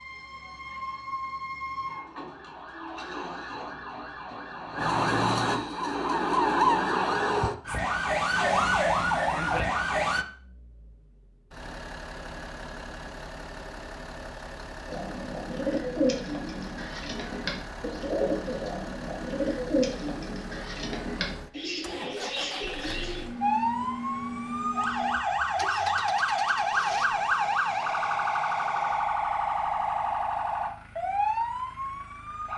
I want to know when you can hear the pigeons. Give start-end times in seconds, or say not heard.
14.8-23.2.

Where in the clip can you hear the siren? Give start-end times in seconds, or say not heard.
0.0-10.2, 23.4-32.5.